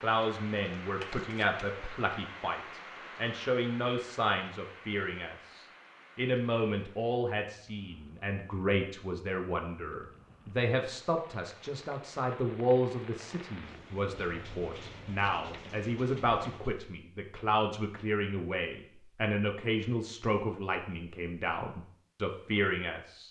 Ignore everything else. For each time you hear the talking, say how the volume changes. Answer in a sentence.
You can hear the talking from 0.0 to 23.2 s, at a steady volume.